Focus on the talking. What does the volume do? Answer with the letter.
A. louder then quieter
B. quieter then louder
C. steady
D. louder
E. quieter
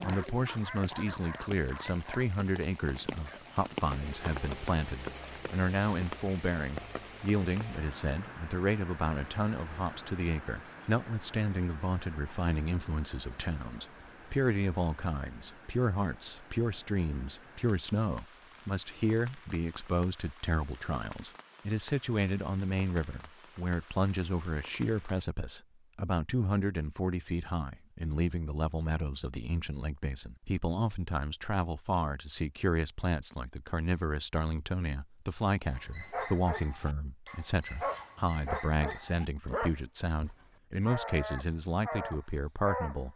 C.